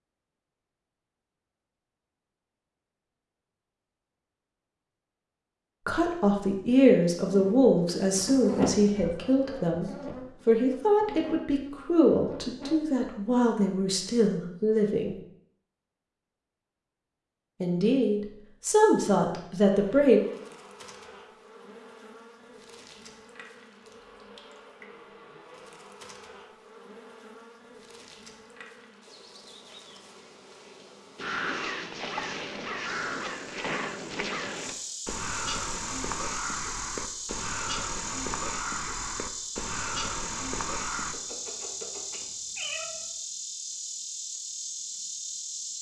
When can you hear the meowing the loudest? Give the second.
9 s.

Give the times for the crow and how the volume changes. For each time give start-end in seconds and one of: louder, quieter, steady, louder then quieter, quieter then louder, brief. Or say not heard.
31.1-41.1 steady.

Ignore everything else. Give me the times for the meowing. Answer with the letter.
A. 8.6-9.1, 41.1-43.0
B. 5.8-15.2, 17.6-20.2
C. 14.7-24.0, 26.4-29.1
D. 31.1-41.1
A.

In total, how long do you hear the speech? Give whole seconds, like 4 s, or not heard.
12 s.